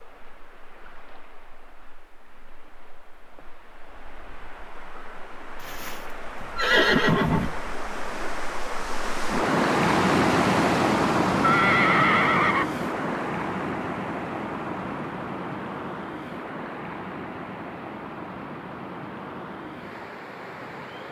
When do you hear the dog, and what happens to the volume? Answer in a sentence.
You can't hear the dog here.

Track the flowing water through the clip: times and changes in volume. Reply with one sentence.
The flowing water can be heard from 0.0 to 21.0 s, getting louder then quieter.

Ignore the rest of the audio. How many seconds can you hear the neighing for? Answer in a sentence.
You can hear the neighing for 3 seconds altogether.